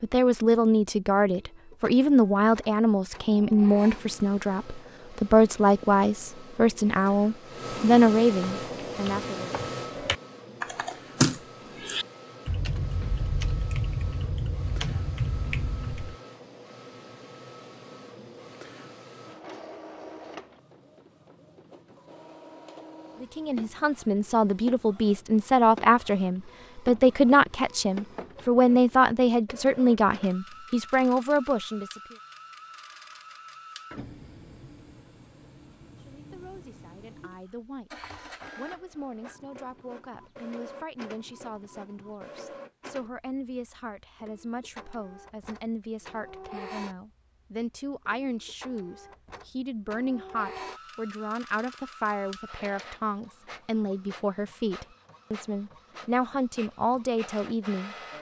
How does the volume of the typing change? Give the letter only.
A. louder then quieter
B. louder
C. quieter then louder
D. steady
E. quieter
A.